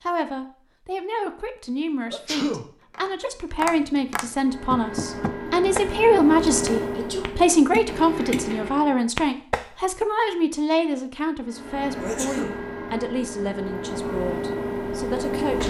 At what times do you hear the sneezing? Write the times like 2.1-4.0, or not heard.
2.1-2.6, 6.5-7.3, 12.0-12.6.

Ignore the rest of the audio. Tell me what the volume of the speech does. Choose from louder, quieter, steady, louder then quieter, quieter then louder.
louder then quieter.